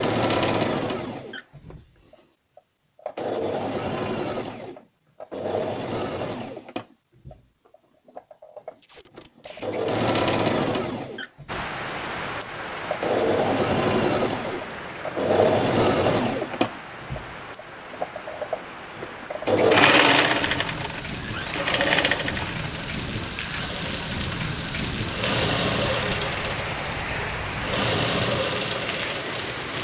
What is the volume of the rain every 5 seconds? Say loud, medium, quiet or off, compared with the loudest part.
off, off, loud, medium, loud, loud.